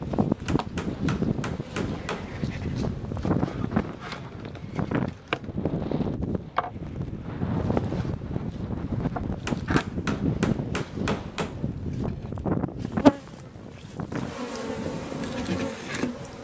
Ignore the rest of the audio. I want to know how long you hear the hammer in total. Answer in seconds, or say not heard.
4 s.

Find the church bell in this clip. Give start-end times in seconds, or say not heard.
not heard.